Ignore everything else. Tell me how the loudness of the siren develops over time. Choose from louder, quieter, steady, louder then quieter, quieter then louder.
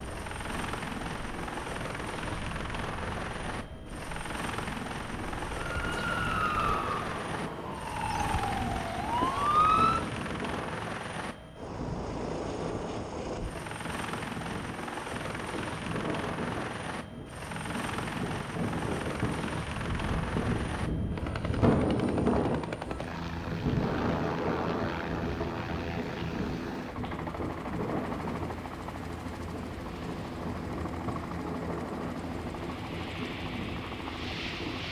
quieter then louder.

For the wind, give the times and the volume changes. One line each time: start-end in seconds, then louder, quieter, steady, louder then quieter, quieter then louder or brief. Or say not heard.
0.0-34.8 louder then quieter.